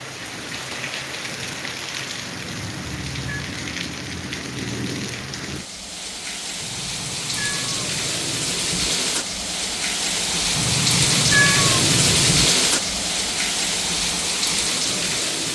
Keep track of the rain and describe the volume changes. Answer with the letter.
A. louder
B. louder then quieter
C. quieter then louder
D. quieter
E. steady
A.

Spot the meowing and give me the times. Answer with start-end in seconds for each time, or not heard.
2.5-3.5, 6.6-8.6, 10.6-12.5.